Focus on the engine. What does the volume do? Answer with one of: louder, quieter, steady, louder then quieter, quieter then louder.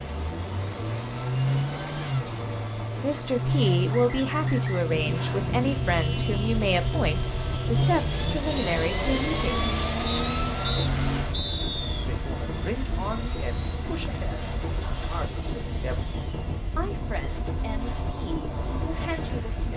quieter.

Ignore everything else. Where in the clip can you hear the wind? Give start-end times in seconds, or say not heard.
0.0-19.7.